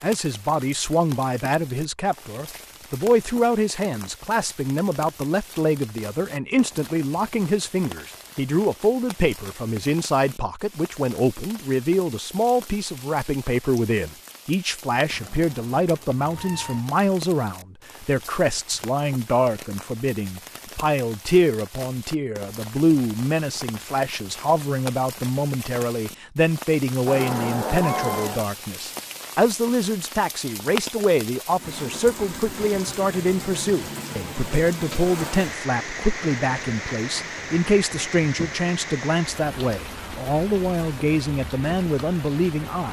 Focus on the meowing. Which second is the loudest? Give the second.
28 s.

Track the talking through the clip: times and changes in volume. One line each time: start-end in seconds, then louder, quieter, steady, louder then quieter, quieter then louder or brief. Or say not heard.
0.0-42.8 steady.